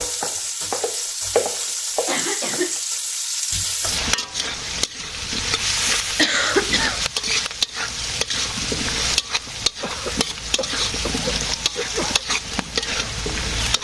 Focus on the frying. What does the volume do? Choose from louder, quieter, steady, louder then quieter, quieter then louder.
steady.